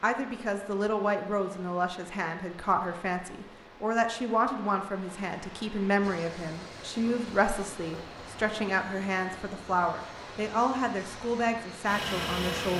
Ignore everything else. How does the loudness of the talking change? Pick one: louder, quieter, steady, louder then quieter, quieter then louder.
steady.